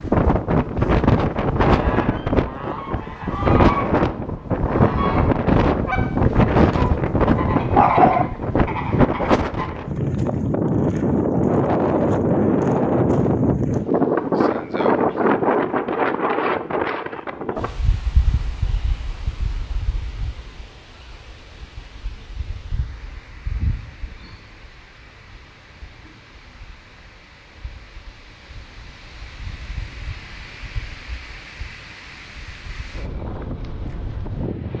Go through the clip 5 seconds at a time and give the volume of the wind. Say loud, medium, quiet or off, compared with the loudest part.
loud, loud, loud, medium, quiet, quiet, quiet.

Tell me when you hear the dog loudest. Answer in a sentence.
The volume of the dog peaks at 8 seconds.